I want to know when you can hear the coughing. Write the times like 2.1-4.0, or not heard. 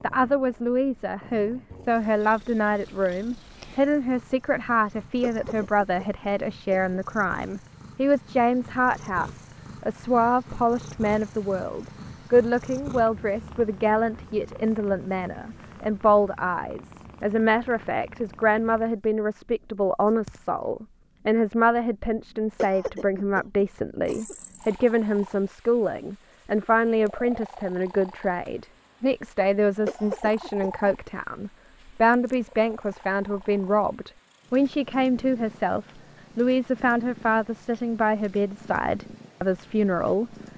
5.2-7.0, 22.6-24.4, 29.9-30.7.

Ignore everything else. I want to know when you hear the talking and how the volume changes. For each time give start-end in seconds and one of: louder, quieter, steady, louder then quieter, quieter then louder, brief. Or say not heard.
0.0-40.3 steady.